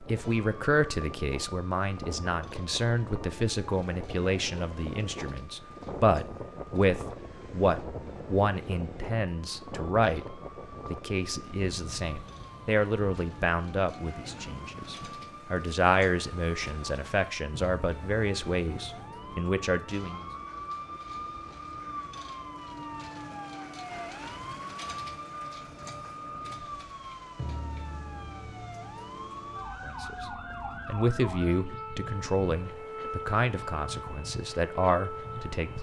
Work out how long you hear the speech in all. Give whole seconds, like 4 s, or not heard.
26 s.